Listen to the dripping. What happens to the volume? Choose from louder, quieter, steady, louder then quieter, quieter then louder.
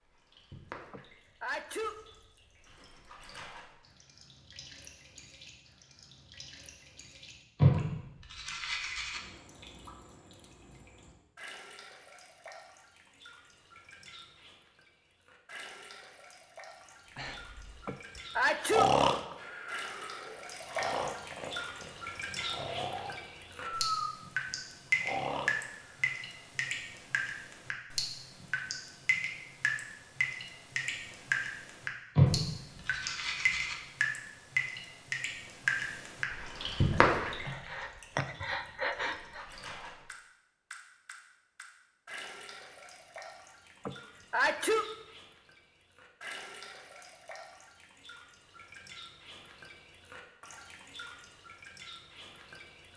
louder then quieter.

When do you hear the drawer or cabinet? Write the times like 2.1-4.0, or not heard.
not heard.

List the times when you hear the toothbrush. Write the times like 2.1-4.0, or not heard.
7.6-9.2, 32.1-33.8.